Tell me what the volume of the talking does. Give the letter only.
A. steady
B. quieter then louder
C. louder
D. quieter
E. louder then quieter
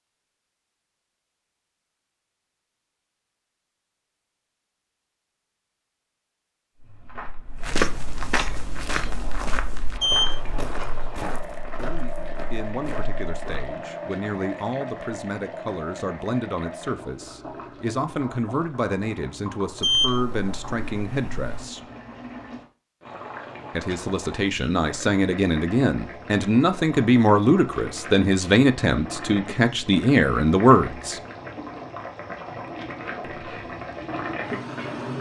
C.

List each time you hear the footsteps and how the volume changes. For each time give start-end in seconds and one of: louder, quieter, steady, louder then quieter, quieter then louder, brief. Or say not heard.
6.8-13.7 quieter.